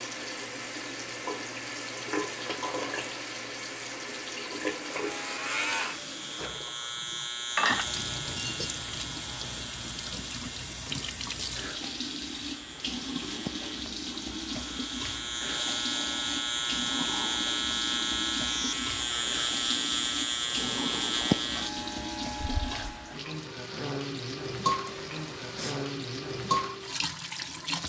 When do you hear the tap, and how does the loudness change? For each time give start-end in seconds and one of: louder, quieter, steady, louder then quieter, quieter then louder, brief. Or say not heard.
0.0-27.8 steady.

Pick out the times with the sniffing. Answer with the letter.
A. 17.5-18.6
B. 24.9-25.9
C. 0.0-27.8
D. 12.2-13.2
B.